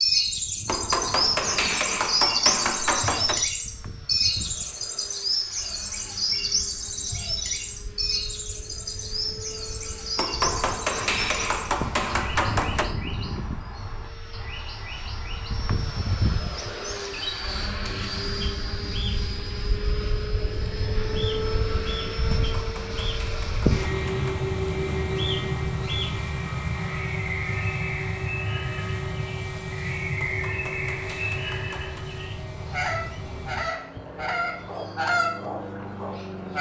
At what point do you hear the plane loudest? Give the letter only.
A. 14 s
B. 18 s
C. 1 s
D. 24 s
D.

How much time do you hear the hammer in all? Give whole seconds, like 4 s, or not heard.
9 s.